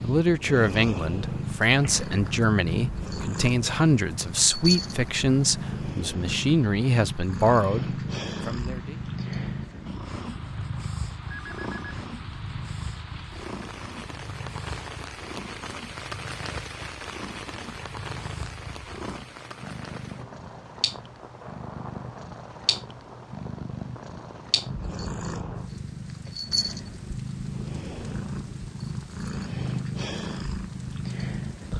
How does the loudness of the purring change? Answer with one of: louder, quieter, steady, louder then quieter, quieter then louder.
quieter then louder.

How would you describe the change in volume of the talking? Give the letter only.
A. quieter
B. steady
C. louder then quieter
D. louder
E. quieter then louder
B.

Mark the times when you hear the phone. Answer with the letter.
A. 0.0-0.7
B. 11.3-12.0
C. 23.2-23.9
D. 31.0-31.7
B.